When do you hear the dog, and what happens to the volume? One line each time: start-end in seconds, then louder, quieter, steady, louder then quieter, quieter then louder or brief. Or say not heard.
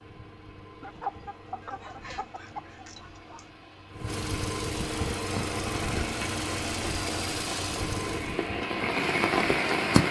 not heard.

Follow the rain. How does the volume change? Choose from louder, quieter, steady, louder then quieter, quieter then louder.
louder.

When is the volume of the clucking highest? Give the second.
1 s.